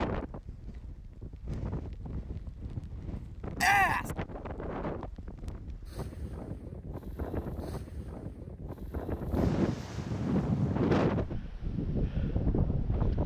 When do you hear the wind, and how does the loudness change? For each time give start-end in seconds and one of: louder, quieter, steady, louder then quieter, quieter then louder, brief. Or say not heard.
0.0-13.2 louder.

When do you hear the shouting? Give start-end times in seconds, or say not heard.
3.5-4.1.